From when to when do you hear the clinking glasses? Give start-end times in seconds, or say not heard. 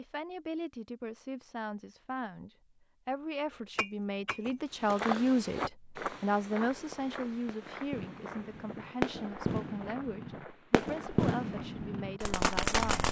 3.8-5.0.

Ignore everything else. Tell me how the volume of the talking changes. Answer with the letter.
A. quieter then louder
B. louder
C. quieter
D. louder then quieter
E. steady
D.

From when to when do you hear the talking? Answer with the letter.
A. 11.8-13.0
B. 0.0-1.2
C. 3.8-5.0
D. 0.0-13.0
D.